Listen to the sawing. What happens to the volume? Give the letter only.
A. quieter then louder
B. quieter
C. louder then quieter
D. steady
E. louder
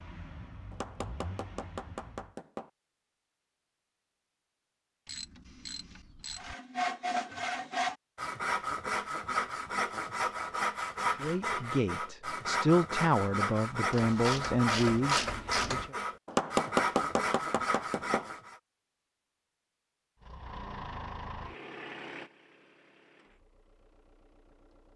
D.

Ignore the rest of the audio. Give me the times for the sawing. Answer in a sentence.
The sawing can be heard from 6.3 to 18.6 s.